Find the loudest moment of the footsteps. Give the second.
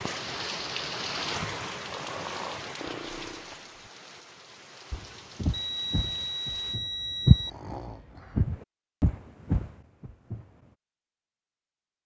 7 s.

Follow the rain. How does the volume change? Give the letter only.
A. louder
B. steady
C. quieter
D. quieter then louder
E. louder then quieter
C.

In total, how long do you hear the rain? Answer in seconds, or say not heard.
7 s.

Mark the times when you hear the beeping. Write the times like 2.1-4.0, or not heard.
5.5-7.5.